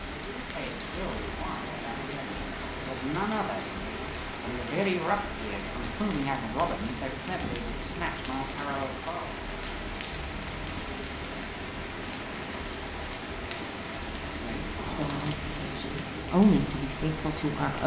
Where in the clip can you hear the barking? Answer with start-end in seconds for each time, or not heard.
not heard.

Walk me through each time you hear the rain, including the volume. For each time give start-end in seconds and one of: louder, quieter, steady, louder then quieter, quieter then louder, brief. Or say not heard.
0.0-17.8 steady.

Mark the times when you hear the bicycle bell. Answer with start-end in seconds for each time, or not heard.
14.8-15.6.